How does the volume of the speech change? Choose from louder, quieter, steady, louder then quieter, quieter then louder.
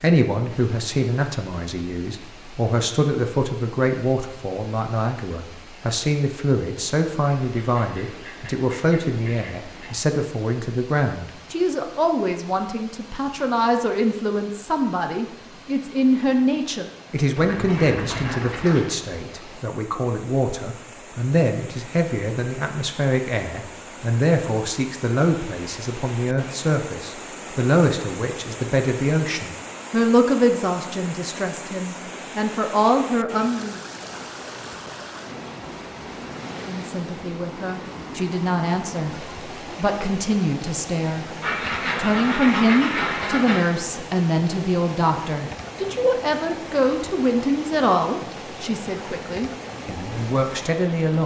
steady.